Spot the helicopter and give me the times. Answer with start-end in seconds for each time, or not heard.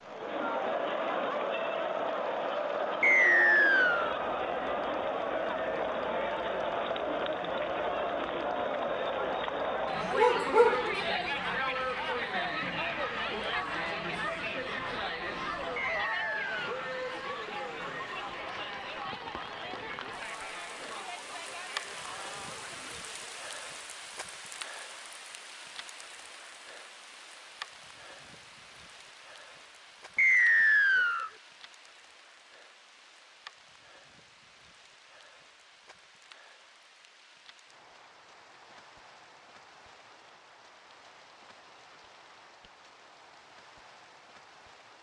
not heard.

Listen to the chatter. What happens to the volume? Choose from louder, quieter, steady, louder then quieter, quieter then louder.
quieter.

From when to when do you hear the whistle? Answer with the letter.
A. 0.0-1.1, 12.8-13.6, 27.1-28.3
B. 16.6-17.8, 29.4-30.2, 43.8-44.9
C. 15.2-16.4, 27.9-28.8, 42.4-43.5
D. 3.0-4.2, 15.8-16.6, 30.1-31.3
D.